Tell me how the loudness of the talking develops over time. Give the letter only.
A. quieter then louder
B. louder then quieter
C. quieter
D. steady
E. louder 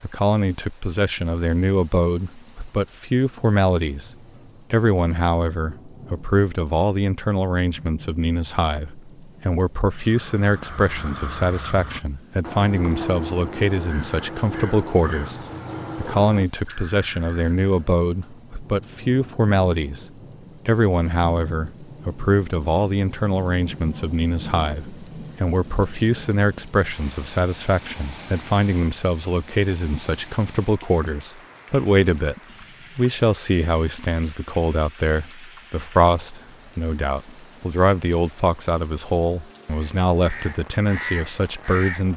D.